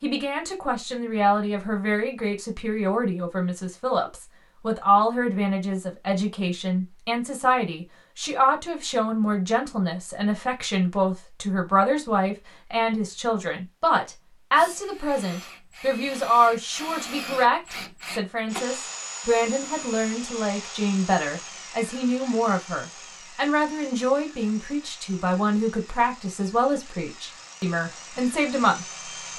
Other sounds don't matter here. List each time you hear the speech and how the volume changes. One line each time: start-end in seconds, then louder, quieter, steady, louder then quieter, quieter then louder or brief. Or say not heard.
0.0-29.3 steady.